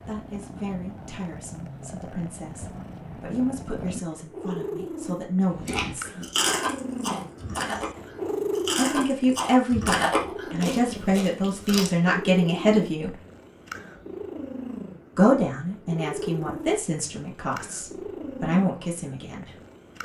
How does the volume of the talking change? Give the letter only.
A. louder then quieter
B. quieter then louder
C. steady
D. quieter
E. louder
A.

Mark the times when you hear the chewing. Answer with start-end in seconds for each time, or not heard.
5.5-11.9.